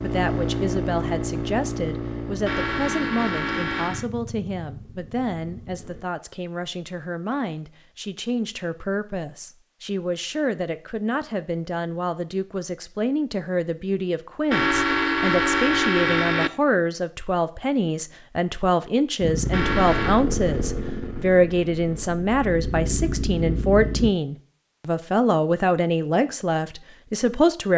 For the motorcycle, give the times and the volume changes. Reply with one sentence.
The motorcycle can be heard from 0.0 to 6.0 s, getting quieter; and from 19.2 to 24.1 s, getting quieter then louder.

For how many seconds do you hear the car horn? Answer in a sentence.
The car horn can be heard for 4 seconds in total.